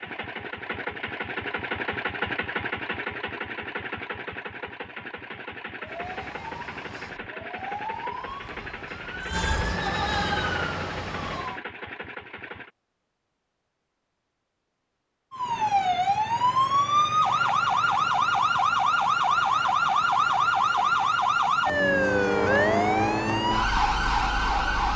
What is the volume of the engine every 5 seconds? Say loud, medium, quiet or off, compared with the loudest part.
loud, medium, medium, off, off.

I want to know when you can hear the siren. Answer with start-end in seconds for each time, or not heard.
5.8-11.6, 15.3-24.9.